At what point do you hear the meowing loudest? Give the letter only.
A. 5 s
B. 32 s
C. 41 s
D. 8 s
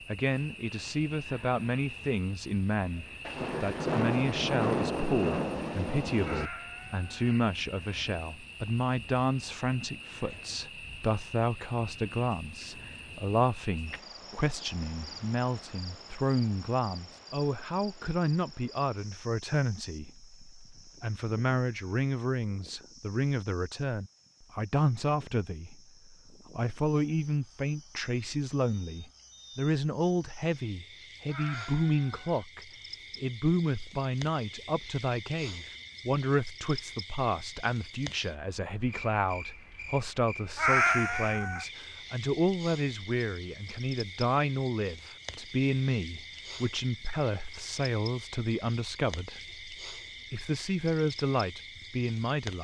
C.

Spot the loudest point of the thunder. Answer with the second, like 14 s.
5 s.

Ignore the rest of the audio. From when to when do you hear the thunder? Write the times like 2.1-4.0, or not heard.
3.2-6.5.